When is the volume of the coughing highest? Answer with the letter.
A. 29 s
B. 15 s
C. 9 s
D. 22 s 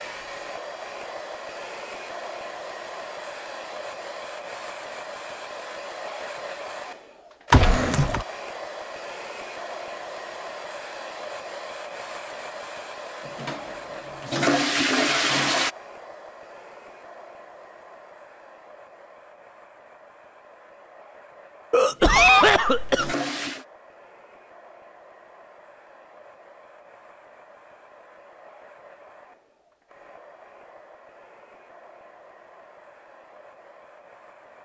D.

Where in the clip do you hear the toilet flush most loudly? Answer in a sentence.
The loudest moment of the toilet flush is at 15 seconds.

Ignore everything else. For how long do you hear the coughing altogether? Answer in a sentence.
You can hear the coughing for 2 seconds altogether.